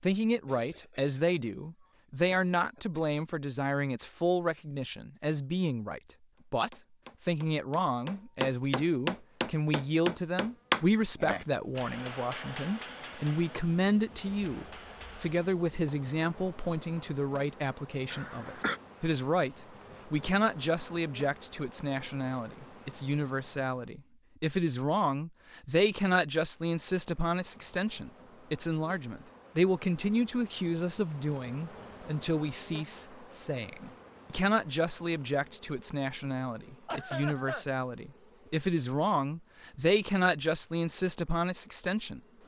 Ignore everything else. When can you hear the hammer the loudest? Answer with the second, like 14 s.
11 s.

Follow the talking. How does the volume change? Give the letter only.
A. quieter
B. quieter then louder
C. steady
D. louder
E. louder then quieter
C.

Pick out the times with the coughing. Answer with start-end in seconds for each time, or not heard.
0.5-1.1, 2.2-3.0, 18.1-18.8, 36.9-37.6.